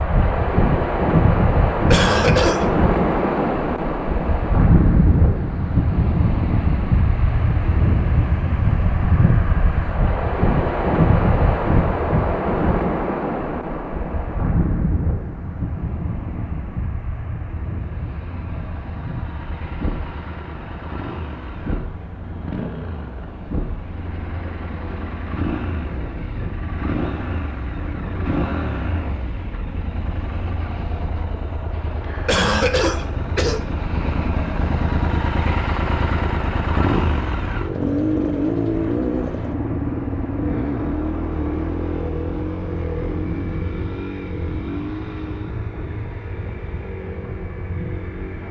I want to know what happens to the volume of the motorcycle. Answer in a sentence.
The volume of the motorcycle goes up, then down.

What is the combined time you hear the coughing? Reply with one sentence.
The coughing can be heard for 2 seconds in total.